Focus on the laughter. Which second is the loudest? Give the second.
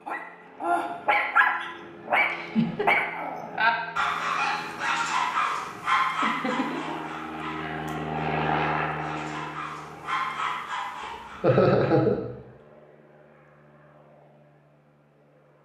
12 s.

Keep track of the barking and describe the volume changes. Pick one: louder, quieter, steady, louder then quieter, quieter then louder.
quieter then louder.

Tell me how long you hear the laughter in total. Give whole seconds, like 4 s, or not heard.
2 s.